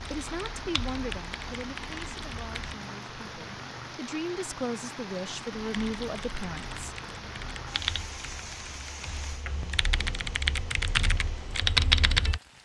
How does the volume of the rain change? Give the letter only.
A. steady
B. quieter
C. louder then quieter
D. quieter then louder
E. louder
B.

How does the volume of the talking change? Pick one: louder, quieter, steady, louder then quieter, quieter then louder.
quieter then louder.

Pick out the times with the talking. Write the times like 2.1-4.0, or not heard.
0.1-7.0.